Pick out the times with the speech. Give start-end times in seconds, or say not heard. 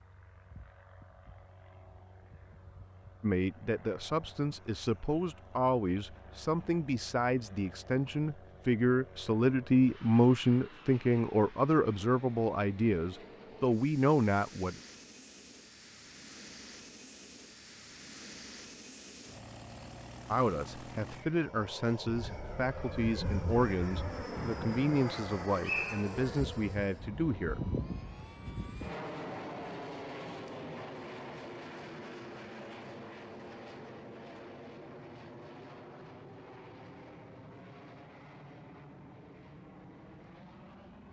3.2-14.8, 20.2-27.6.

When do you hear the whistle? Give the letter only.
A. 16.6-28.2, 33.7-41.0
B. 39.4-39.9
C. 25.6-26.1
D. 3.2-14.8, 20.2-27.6
C.